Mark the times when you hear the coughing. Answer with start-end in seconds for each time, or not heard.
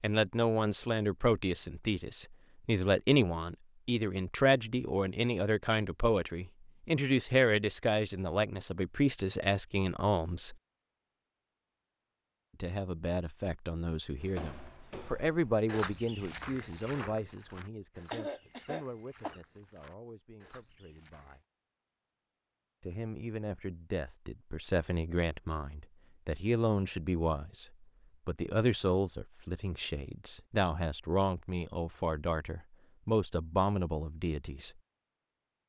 18.1-19.4.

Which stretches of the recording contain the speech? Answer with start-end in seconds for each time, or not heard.
0.0-10.6, 12.6-21.4, 22.8-34.8.